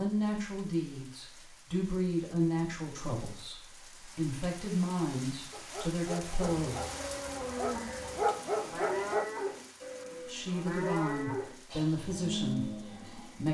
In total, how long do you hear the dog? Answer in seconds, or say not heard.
4 s.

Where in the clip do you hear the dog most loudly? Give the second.
8 s.